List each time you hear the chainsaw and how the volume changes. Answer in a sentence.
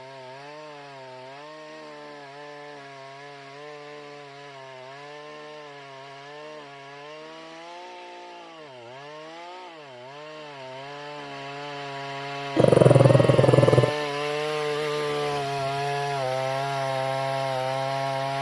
You can hear the chainsaw from 0.0 to 18.3 s, getting louder.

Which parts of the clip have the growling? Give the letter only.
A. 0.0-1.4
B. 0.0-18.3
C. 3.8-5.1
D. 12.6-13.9
D.